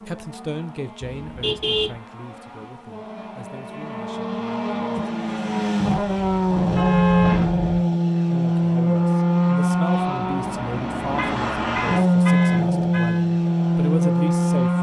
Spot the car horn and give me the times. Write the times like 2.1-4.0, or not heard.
1.1-2.0, 6.2-7.8, 11.1-13.2.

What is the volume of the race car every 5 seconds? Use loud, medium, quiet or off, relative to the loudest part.
quiet, loud, loud.